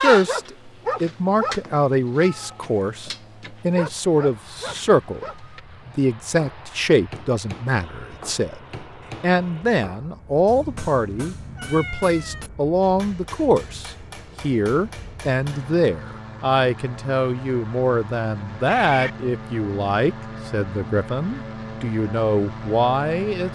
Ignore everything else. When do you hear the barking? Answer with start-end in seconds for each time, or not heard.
0.0-5.6.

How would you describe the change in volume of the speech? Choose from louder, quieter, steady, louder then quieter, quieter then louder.
steady.